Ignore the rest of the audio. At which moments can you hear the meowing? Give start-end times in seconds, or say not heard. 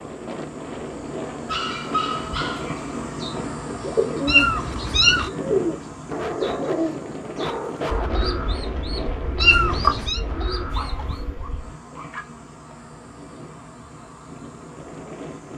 4.2-5.3, 9.4-10.2.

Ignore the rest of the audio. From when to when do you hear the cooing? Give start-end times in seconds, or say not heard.
2.8-11.2.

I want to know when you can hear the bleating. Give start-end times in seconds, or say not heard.
not heard.